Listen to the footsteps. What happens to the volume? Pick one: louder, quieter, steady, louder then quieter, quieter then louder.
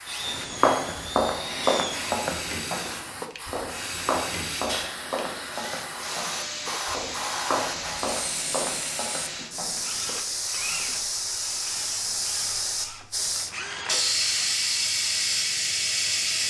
quieter.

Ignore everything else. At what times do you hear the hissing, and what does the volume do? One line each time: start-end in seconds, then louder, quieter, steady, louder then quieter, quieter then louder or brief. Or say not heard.
0.0-16.4 louder.